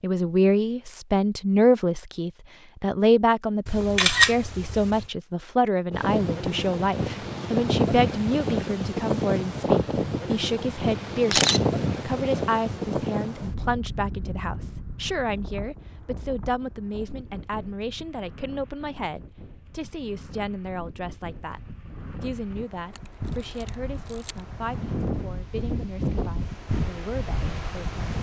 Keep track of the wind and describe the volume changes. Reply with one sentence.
The loudness of the wind goes down, then up.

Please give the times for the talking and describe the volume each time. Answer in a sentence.
You can hear the talking from 0.0 to 27.9 s, getting quieter.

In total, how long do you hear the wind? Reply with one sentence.
You can hear the wind for 22 seconds altogether.